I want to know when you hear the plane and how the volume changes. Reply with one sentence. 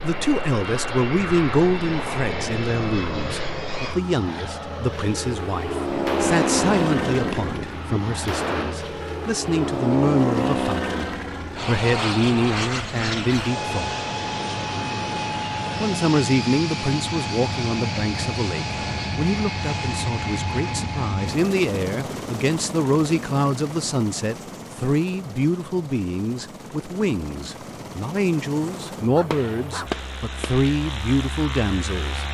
The plane can be heard from 0.0 to 32.2 s, getting quieter.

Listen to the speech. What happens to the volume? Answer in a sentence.
The loudness of the speech stays about the same.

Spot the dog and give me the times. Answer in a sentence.
You can hear the dog from 29.1 to 29.9 s.